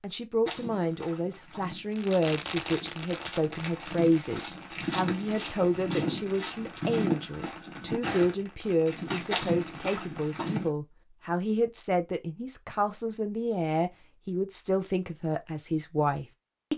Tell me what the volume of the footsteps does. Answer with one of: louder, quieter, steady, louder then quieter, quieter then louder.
louder.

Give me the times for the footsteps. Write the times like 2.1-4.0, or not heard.
0.5-10.7.